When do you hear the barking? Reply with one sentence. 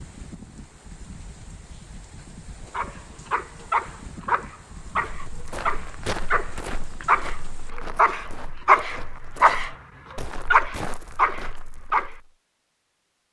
You can hear the barking from 2.7 to 12.2 s.